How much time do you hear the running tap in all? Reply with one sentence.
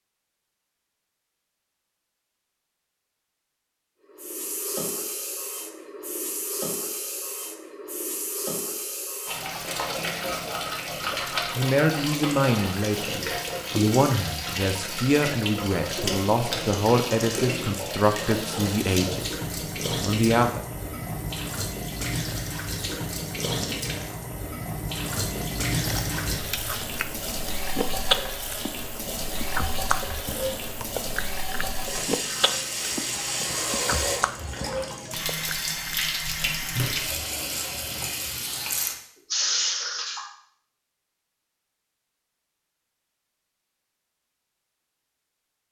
The running tap can be heard for 36 seconds in total.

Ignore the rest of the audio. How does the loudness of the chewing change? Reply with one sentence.
The loudness of the chewing goes up, then down.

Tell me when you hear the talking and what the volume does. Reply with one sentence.
The talking can be heard from 11.6 to 19.2 s, at a steady volume; and briefly from 20.1 to 20.6 s.